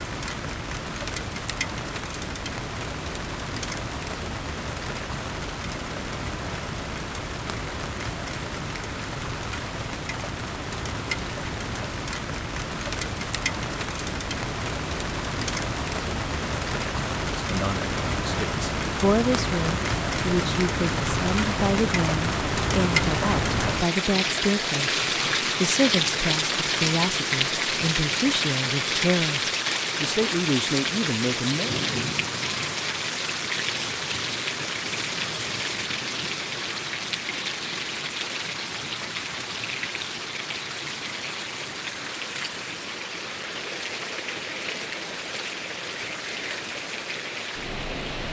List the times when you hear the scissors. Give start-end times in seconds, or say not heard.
not heard.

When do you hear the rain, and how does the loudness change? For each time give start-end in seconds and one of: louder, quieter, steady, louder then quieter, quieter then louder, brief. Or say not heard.
0.0-48.2 louder then quieter.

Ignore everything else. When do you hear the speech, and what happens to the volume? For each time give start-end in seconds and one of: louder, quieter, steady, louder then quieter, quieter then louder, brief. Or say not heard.
17.4-29.4 steady
30.0-31.8 brief.